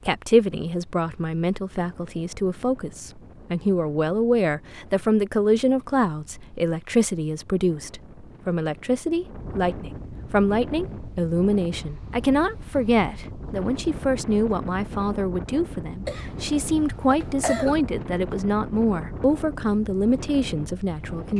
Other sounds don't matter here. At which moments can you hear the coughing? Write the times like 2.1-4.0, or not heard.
16.1-17.9.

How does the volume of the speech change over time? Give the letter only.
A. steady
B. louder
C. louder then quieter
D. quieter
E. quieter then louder
A.